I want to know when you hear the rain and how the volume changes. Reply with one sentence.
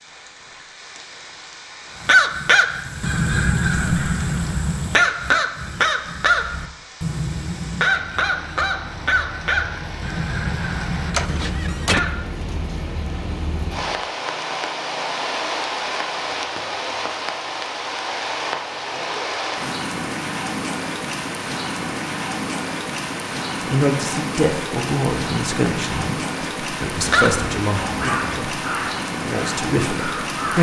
You can hear the rain from 0.0 to 30.5 s, getting louder.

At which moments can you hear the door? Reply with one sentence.
You can hear the door from 11.1 to 12.0 s.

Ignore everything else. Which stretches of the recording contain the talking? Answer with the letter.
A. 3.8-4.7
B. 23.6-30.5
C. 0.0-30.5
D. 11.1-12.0
B.